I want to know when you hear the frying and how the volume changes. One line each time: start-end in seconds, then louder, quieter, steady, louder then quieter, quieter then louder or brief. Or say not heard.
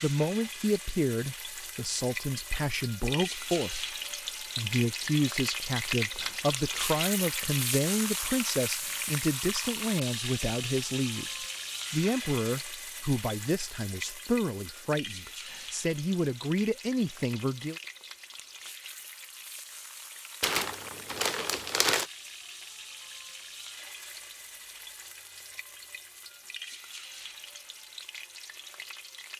0.0-29.3 quieter.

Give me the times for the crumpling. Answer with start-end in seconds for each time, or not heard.
20.4-22.1.